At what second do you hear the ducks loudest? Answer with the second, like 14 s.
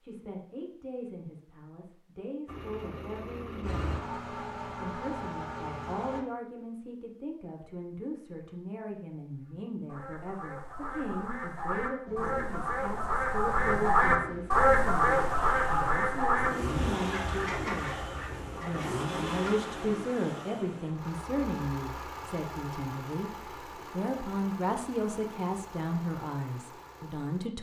15 s.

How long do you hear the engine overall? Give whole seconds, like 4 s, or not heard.
19 s.